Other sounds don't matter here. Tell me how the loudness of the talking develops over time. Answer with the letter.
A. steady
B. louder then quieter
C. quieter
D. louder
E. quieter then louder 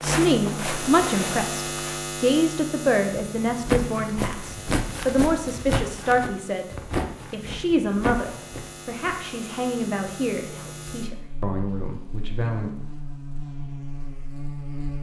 C.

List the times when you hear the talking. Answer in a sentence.
The talking can be heard from 0.0 to 12.7 s.